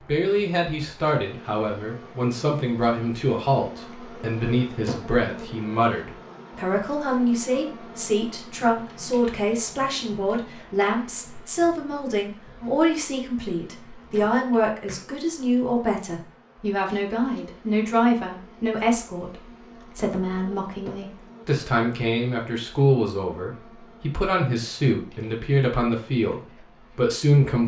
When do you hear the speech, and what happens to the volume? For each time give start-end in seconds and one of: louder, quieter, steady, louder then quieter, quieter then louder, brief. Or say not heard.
0.1-27.6 steady.